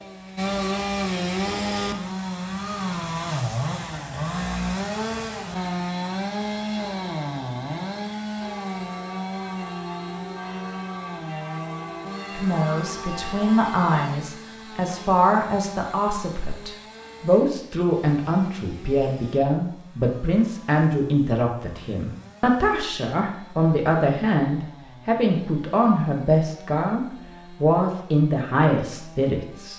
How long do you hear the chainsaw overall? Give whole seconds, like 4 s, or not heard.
30 s.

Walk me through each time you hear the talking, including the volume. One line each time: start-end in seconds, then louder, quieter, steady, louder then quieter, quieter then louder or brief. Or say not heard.
12.3-29.7 steady.